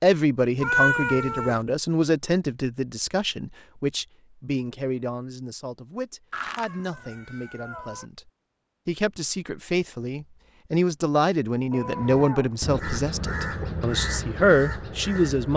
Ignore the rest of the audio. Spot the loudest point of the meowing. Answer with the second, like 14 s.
1 s.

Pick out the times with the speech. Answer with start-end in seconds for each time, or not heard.
0.0-15.5.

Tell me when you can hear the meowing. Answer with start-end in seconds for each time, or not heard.
0.6-1.6, 6.3-8.1, 11.7-12.8.